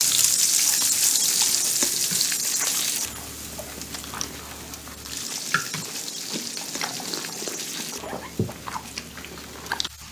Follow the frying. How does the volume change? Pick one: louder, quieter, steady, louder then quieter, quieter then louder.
quieter.